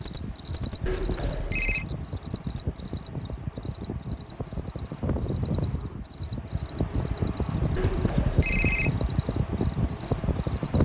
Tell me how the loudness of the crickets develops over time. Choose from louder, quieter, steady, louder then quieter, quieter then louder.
quieter then louder.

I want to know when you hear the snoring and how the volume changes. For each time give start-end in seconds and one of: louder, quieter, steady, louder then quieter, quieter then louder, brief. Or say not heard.
not heard.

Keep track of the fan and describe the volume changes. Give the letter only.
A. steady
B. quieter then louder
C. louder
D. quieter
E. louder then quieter
C.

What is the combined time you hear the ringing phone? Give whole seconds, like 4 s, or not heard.
2 s.